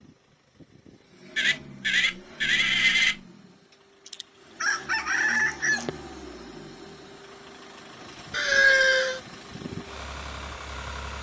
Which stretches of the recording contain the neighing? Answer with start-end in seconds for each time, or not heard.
1.4-3.1, 8.3-9.2.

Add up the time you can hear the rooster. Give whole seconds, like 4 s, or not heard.
2 s.